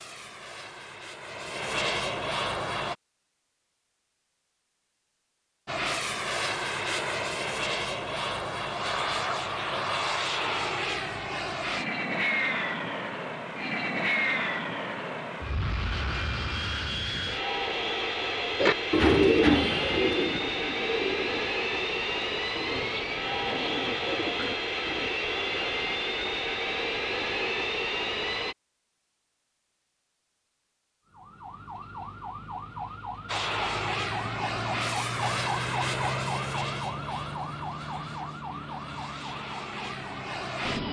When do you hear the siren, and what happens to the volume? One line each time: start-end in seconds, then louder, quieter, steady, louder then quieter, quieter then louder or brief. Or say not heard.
31.1-40.8 louder then quieter.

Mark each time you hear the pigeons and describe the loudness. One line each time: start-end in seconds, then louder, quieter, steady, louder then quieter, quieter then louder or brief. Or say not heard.
18.6-25.1 quieter then louder.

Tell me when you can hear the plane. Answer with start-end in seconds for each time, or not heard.
0.0-3.0, 5.7-28.6, 33.2-40.8.